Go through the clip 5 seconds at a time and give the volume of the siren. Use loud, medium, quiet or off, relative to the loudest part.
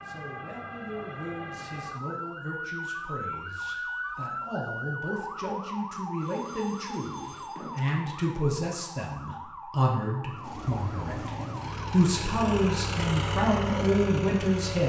loud, loud, medium.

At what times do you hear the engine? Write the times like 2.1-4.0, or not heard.
10.3-14.8.